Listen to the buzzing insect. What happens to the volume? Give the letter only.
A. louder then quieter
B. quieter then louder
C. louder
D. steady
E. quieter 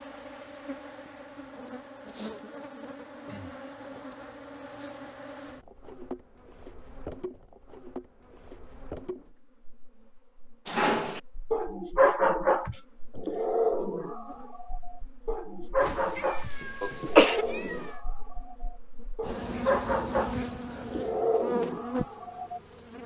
B.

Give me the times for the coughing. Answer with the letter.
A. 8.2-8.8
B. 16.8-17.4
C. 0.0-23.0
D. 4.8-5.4
B.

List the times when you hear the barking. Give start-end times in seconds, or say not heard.
10.7-22.6.